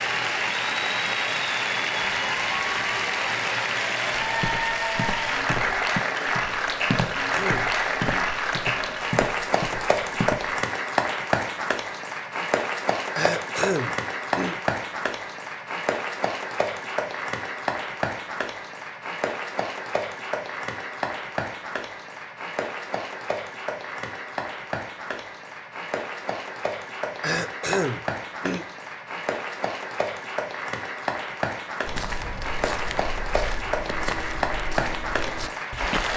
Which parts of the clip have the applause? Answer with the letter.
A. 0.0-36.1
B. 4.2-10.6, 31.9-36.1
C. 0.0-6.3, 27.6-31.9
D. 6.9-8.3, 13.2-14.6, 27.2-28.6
A.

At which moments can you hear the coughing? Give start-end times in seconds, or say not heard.
6.9-8.3, 13.2-14.6, 27.2-28.6.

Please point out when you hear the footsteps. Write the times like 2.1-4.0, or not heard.
4.2-10.6, 31.9-36.1.